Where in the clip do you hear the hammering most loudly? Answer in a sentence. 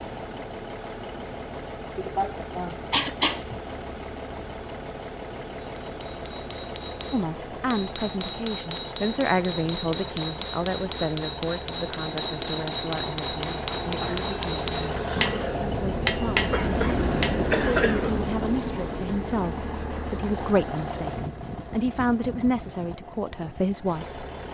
The loudest moment of the hammering is at 16 seconds.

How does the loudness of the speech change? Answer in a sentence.
The loudness of the speech goes down, then up.